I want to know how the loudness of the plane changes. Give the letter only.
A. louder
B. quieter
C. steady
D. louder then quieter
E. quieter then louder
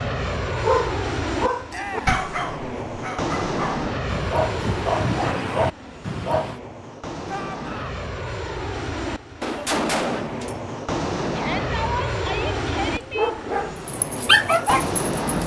C.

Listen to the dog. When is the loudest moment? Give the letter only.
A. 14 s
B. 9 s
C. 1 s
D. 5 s
A.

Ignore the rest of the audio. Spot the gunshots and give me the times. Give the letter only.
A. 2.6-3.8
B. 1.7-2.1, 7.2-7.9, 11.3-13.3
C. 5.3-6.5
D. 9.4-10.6
D.